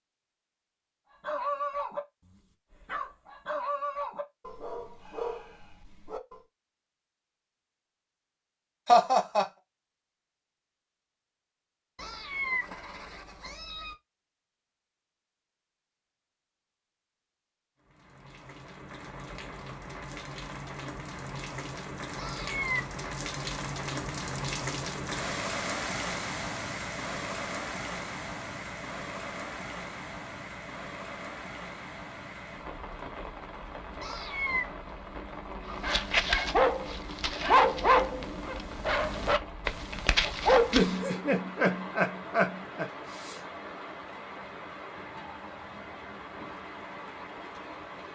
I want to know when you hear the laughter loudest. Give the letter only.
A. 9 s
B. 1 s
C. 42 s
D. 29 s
A.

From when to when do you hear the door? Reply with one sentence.
You can't hear the door here.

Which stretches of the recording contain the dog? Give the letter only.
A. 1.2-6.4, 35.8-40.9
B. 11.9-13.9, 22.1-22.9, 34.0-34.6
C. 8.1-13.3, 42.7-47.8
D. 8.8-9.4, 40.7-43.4
A.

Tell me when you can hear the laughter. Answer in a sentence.
The laughter can be heard from 8.8 to 9.4 s and from 40.7 to 43.4 s.